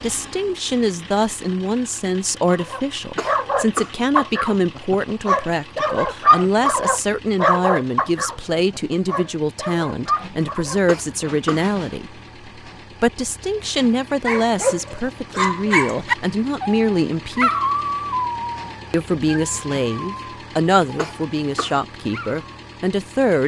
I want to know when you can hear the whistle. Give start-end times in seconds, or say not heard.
not heard.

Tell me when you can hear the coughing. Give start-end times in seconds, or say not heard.
3.1-4.0, 10.8-11.7, 20.9-21.8.